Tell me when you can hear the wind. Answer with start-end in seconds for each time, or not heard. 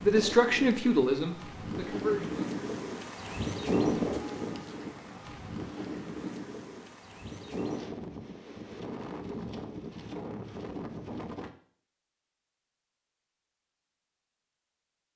0.0-11.5.